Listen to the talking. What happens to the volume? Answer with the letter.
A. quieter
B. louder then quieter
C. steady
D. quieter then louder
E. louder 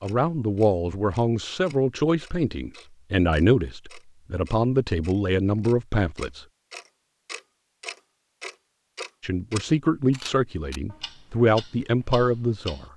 C.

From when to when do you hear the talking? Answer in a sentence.
You can hear the talking from 0.0 to 6.5 s and from 9.2 to 12.8 s.